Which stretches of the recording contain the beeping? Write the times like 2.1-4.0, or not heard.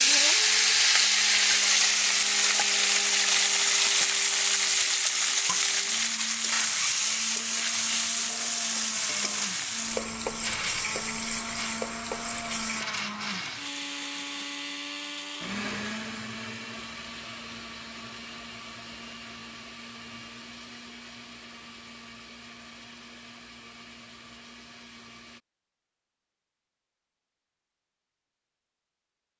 not heard.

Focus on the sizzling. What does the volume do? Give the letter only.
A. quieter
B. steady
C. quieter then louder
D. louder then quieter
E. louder
A.